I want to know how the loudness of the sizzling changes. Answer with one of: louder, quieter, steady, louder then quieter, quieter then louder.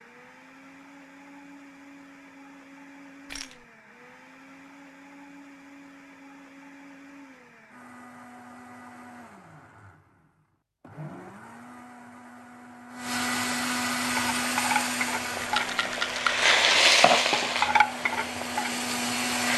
louder then quieter.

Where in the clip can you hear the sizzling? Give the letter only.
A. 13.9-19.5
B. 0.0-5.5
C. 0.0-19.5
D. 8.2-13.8
A.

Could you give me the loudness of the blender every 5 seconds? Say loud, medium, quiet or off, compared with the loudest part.
quiet, quiet, loud, loud.